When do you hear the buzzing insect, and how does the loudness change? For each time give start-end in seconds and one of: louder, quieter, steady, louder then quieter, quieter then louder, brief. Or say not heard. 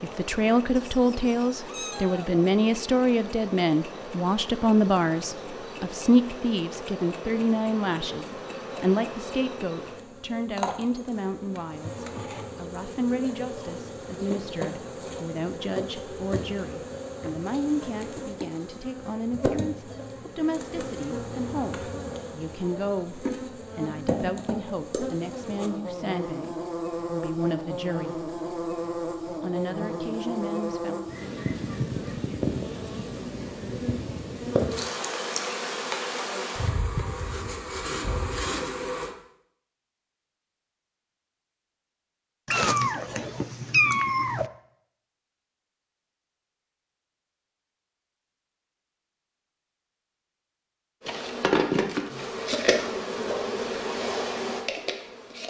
0.0-39.1 louder
51.0-55.4 quieter.